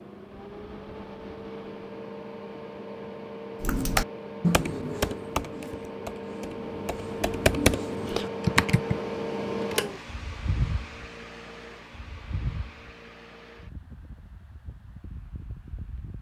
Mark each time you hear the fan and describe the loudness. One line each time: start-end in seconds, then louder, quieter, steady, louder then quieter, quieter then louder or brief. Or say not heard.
0.0-16.1 louder then quieter.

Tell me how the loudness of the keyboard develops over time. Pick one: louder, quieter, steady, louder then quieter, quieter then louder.
quieter then louder.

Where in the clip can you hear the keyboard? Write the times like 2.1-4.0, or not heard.
3.6-9.0.